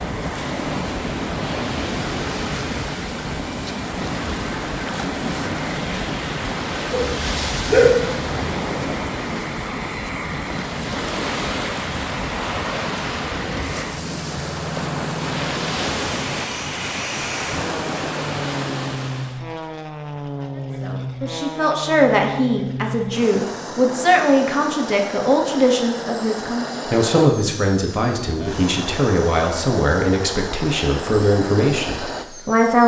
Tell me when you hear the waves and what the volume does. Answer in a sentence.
You can hear the waves from 0.0 to 19.4 s, at a steady volume.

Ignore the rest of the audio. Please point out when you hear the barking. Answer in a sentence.
The barking can be heard from 6.9 to 8.4 s.